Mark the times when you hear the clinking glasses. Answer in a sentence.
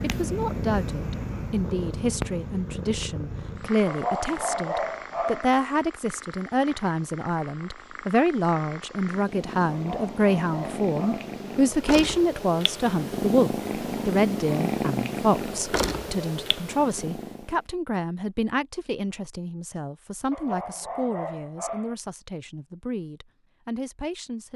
The clinking glasses can't be heard in this clip.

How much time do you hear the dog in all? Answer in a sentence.
You can hear the dog for 5 seconds altogether.